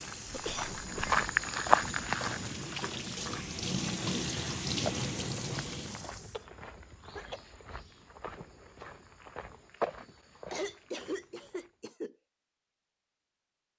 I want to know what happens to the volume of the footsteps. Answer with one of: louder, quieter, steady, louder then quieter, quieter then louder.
quieter then louder.